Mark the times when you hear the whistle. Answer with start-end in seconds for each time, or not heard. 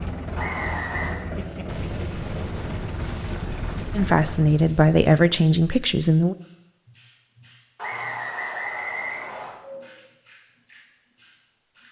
0.3-1.2, 7.8-9.6.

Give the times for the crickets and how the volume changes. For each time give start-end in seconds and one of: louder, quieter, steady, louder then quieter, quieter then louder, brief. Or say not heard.
0.2-11.8 steady.